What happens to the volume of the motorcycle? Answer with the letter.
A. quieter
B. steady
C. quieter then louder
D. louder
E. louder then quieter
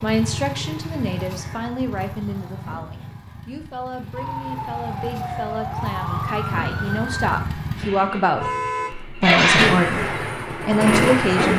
C.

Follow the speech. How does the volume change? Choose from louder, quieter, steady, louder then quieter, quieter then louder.
quieter then louder.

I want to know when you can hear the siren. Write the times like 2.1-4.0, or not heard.
4.2-7.3.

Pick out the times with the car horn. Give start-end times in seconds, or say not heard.
8.3-9.1.